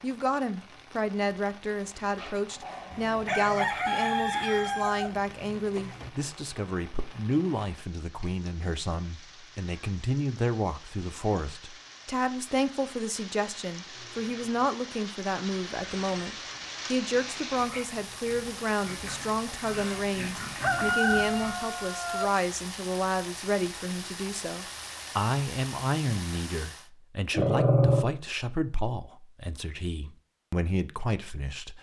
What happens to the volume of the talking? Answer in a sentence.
The loudness of the talking stays about the same.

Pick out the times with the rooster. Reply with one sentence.
You can hear the rooster from 2.9 to 6.1 s and from 20.6 to 22.3 s.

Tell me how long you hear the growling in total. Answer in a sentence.
You can hear the growling for 2 seconds altogether.